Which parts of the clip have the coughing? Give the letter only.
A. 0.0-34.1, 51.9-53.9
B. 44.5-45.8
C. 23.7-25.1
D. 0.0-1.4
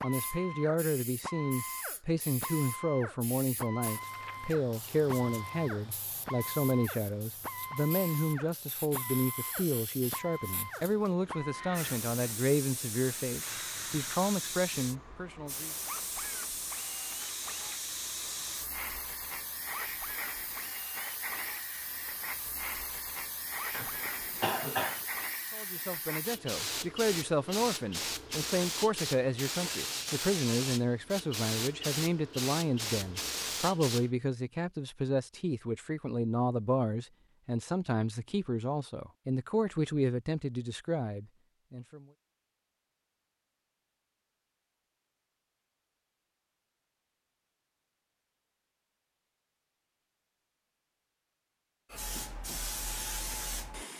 C.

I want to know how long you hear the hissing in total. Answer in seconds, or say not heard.
36 s.